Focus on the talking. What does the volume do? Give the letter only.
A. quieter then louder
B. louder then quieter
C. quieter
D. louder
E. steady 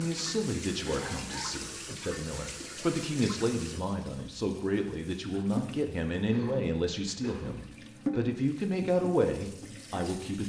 D.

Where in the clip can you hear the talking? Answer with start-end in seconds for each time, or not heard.
0.0-10.4.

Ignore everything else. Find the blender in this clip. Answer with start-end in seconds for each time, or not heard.
not heard.